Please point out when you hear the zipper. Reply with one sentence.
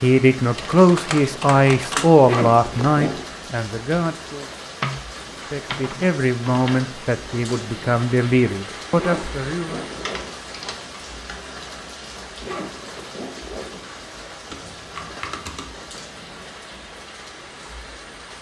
The zipper can be heard from 2.2 to 3.2 s, from 8.9 to 10.3 s and from 12.4 to 14.1 s.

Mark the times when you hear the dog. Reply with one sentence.
You can't hear the dog here.